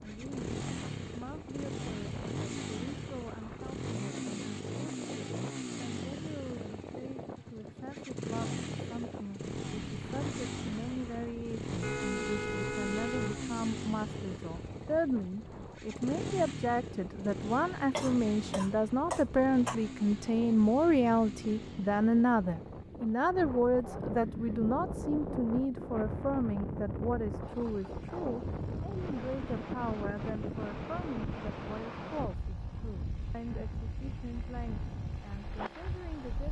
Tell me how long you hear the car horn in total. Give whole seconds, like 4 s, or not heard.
2 s.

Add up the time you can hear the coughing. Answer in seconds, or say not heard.
2 s.